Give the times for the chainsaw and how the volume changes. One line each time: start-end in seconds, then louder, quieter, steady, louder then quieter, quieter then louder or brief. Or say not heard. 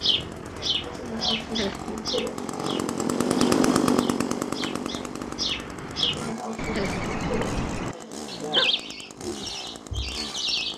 0.0-10.7 louder then quieter.